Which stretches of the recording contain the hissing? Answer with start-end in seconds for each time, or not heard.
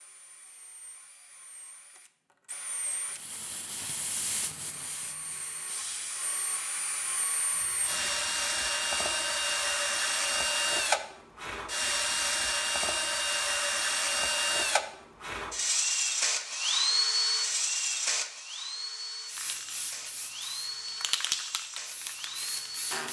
3.0-8.3, 19.2-23.0.